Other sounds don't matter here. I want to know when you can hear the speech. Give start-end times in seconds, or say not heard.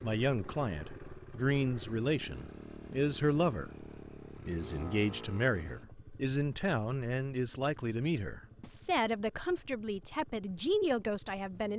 0.0-3.9, 4.5-11.7.